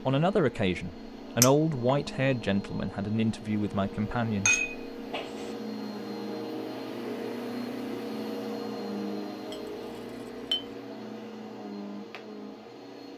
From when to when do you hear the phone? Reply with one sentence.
You can't hear the phone here.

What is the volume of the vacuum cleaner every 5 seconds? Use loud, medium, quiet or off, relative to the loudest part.
medium, loud, medium.